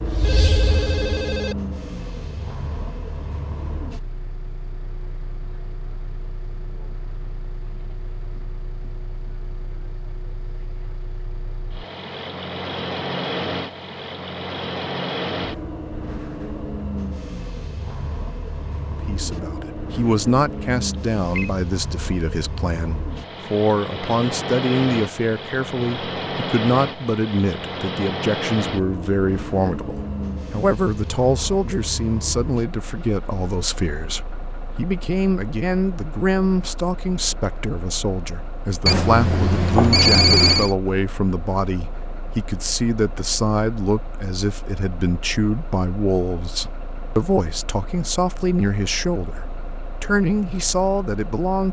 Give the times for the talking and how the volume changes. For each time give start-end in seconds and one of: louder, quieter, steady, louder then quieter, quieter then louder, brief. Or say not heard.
19.0-51.6 steady.